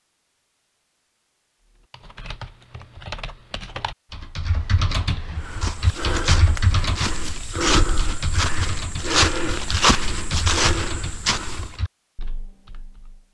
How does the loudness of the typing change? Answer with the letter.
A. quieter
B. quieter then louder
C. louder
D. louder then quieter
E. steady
D.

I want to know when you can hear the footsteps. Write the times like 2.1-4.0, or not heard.
5.3-11.8.